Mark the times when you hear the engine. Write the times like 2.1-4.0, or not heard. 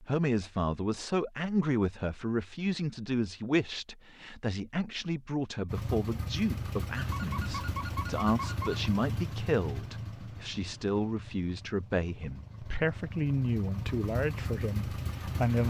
5.7-15.6.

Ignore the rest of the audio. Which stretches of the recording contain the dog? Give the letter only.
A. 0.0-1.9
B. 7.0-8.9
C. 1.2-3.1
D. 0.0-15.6
B.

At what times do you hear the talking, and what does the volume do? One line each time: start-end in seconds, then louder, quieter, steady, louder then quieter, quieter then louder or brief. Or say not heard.
0.0-15.6 steady.